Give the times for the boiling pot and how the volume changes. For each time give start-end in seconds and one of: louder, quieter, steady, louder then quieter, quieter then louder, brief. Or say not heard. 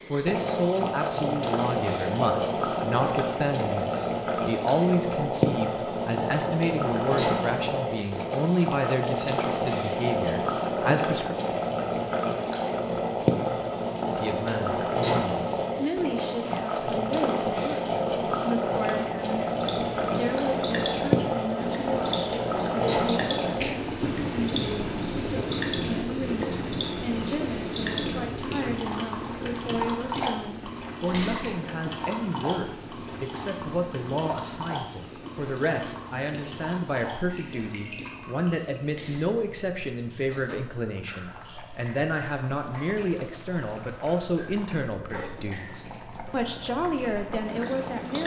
0.0-48.2 quieter.